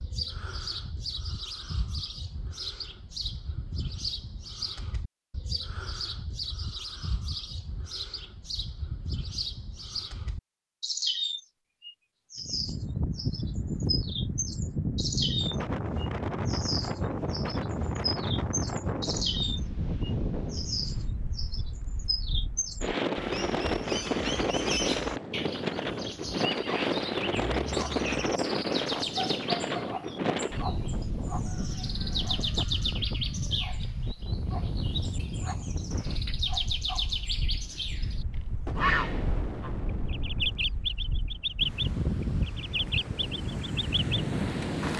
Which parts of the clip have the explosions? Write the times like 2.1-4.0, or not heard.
38.6-40.7.